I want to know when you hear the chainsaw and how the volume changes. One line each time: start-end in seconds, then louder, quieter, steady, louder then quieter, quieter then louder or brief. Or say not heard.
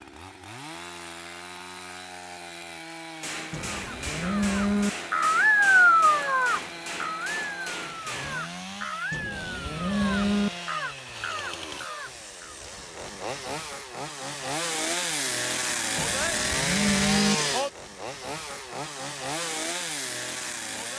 0.0-20.9 louder.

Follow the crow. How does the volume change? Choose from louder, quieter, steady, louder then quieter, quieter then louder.
quieter.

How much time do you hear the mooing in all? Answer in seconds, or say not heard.
4 s.